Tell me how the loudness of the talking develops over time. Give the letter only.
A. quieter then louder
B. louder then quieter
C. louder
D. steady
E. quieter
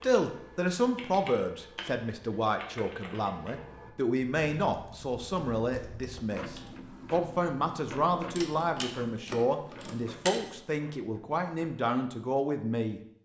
D.